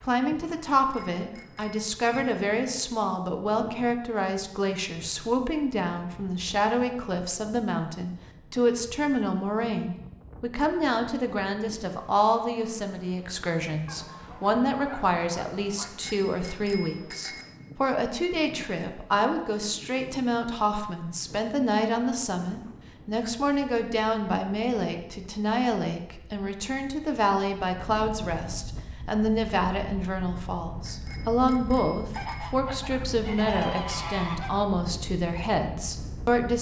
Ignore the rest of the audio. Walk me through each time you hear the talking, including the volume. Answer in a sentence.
The talking can be heard from 0.0 to 36.5 s, at a steady volume.